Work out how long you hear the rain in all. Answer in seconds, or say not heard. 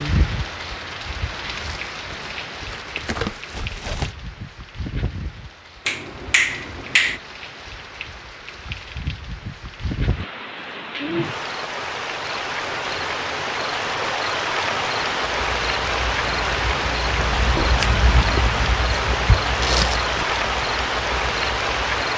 22 s.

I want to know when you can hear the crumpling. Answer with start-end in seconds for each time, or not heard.
1.6-4.2, 19.6-20.2.